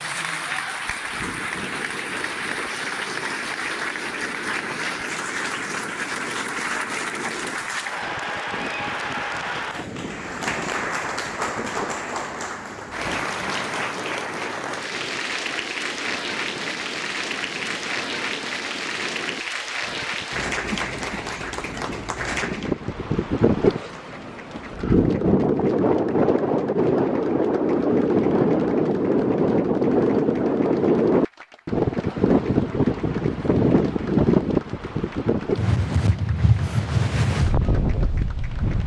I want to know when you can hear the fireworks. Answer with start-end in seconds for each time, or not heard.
not heard.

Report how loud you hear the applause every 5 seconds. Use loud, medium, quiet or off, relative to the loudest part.
loud, loud, loud, loud, loud, quiet, quiet, quiet.